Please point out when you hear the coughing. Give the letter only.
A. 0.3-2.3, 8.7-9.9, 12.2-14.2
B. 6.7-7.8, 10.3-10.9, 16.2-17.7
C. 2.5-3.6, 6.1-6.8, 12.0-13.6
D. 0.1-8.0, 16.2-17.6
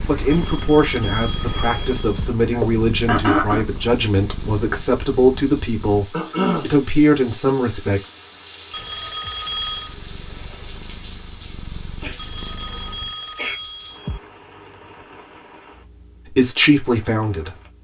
C.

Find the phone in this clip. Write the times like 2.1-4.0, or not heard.
0.3-2.3, 8.7-9.9, 12.2-14.2.